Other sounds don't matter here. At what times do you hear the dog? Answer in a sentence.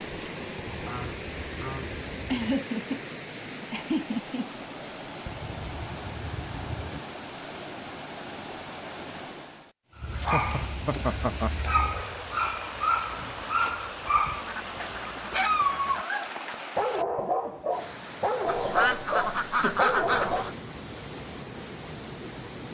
You can hear the dog from 9.9 to 20.5 s.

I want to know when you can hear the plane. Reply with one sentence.
The plane can't be heard in this clip.